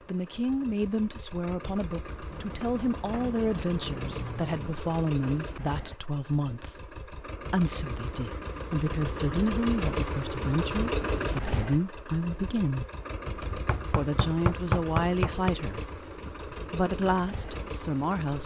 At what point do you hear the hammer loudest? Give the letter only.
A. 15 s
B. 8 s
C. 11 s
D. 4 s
A.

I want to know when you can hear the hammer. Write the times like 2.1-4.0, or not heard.
2.2-4.8, 13.5-15.5.